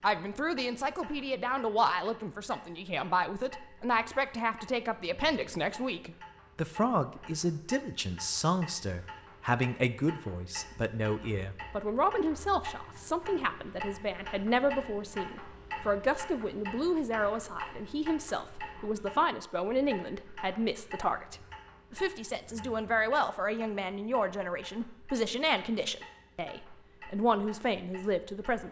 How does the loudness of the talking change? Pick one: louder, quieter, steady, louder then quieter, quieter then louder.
steady.